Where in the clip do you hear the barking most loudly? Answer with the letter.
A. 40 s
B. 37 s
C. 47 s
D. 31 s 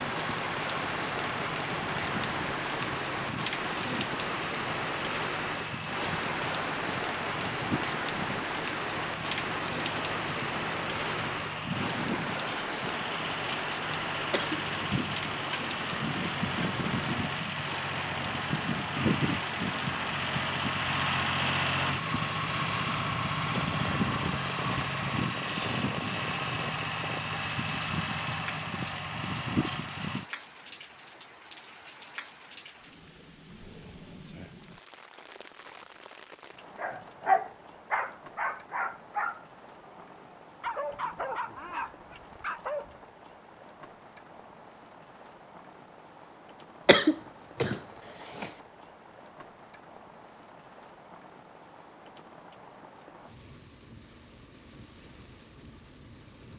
B.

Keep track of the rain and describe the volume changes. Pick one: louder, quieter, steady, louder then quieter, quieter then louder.
quieter.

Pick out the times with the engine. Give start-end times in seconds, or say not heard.
0.0-30.2.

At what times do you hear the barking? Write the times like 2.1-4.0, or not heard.
36.8-43.0.